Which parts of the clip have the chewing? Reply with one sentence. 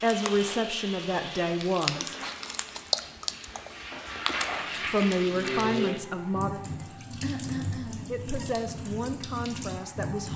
The chewing can be heard from 0.1 to 0.6 s and from 1.6 to 5.7 s.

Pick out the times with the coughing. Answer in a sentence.
The coughing can be heard from 7.2 to 8.2 s.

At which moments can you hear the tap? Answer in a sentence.
You can hear the tap from 0.0 to 10.3 s.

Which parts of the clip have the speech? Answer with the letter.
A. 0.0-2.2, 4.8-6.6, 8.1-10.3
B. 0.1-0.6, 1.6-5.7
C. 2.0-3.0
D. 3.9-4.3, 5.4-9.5
A.